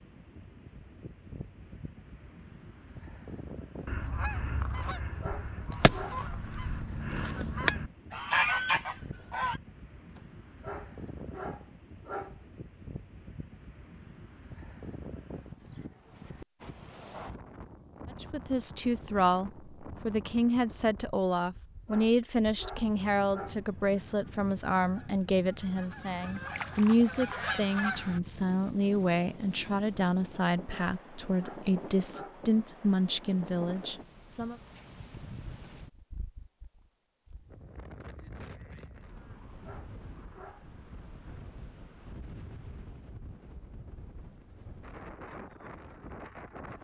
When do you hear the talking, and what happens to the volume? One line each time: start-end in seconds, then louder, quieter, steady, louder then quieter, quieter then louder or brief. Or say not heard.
18.2-34.5 steady.